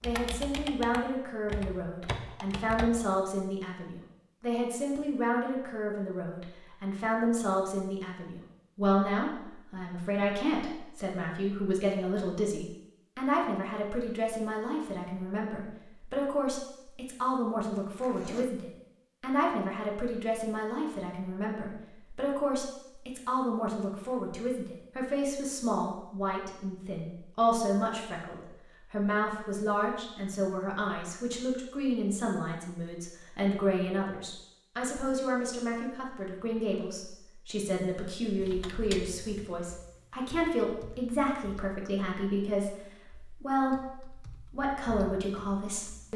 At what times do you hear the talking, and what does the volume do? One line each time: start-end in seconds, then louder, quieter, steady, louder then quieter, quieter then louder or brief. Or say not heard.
0.0-46.1 steady.